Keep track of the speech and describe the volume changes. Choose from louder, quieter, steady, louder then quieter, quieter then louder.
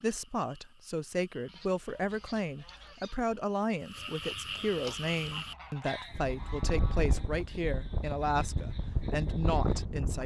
steady.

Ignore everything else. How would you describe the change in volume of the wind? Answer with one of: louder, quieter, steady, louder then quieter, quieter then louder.
louder.